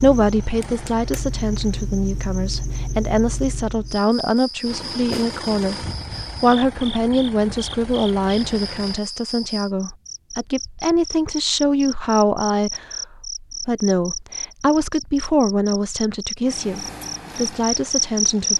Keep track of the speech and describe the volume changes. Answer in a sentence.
The loudness of the speech stays about the same.